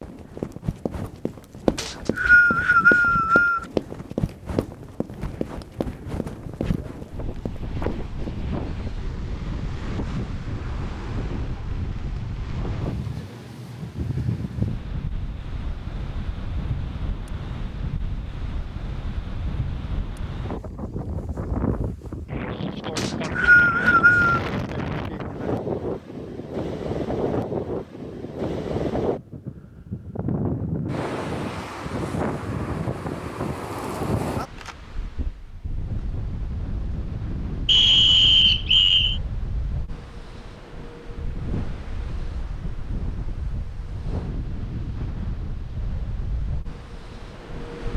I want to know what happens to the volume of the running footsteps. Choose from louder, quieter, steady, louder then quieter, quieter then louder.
quieter.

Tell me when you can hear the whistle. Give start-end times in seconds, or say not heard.
1.8-3.6, 22.9-24.4, 37.6-39.2.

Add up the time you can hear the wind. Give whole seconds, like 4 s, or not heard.
48 s.